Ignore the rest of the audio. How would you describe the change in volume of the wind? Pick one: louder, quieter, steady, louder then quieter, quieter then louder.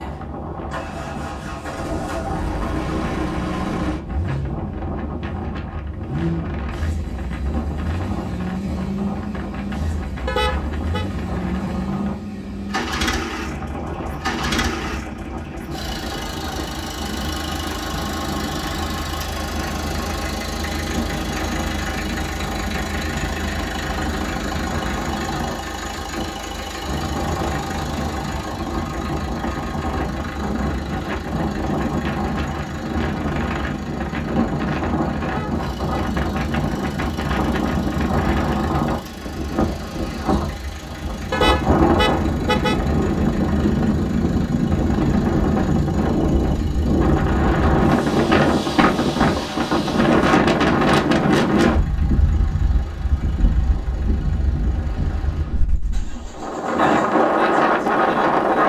louder.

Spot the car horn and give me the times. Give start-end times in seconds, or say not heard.
10.2-11.1, 35.2-36.0, 41.3-42.8.